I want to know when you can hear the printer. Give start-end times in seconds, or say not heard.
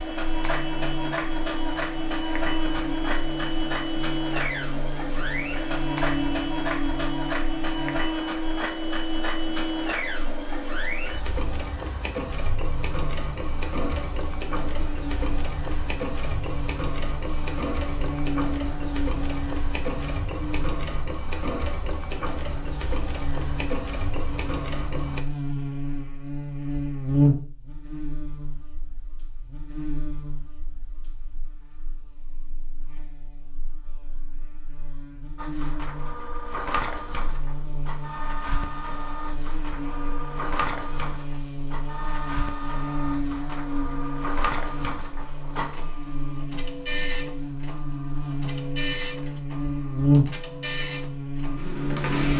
0.0-25.2, 35.4-52.3.